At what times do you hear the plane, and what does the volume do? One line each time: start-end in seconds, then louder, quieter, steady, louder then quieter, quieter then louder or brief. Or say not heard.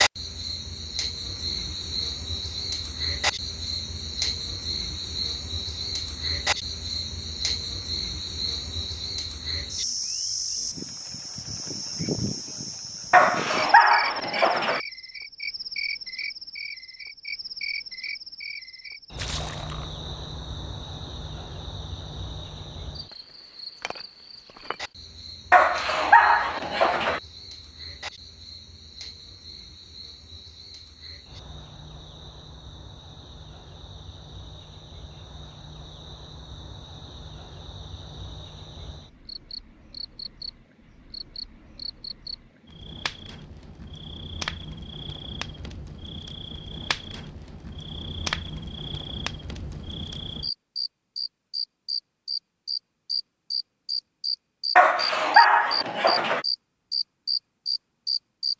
not heard.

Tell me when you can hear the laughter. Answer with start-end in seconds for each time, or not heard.
not heard.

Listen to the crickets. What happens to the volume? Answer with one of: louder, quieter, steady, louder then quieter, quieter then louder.
quieter then louder.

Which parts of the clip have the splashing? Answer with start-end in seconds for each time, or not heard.
19.1-19.9.